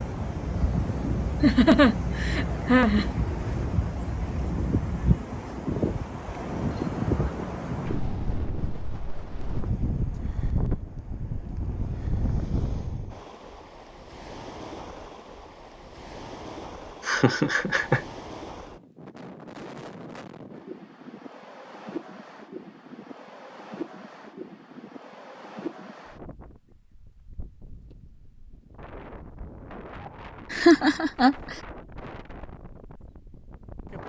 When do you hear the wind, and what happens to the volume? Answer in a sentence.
You can hear the wind from 0.0 to 34.0 s, getting quieter.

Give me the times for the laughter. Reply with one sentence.
You can hear the laughter from 1.4 to 3.0 s, from 17.1 to 18.0 s and from 30.5 to 31.6 s.